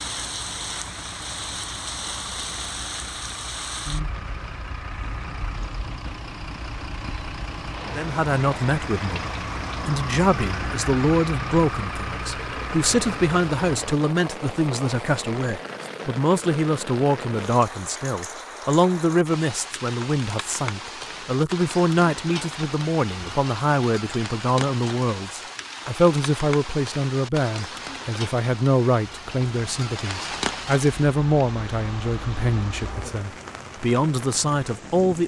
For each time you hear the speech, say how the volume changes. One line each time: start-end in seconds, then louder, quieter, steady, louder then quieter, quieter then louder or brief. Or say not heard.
8.0-35.2 steady.